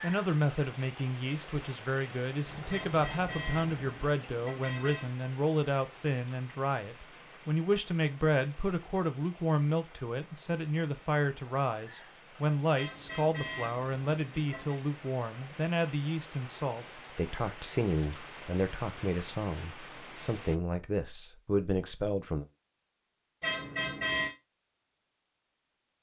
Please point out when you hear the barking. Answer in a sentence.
You can't hear the barking here.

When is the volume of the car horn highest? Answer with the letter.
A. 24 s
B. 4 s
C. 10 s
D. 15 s
A.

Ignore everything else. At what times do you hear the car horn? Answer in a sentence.
You can hear the car horn from 2.7 to 5.2 s, from 12.8 to 14.8 s and from 23.4 to 24.3 s.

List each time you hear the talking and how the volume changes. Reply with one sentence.
The talking can be heard from 0.0 to 22.4 s, at a steady volume.